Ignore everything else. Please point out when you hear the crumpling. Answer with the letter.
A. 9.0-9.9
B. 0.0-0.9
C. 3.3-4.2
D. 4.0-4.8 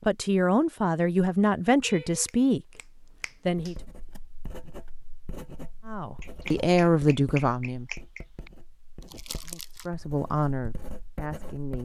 A.